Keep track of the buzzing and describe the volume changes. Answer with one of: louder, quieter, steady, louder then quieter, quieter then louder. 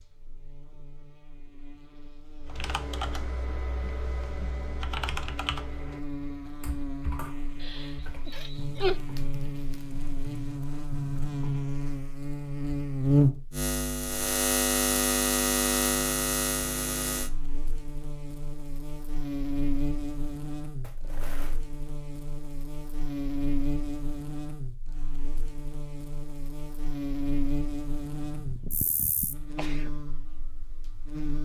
louder then quieter.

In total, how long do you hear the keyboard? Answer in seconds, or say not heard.
9 s.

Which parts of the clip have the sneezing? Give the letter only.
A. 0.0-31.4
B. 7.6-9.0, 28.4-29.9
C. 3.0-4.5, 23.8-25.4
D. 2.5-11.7
B.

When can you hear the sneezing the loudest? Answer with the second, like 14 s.
9 s.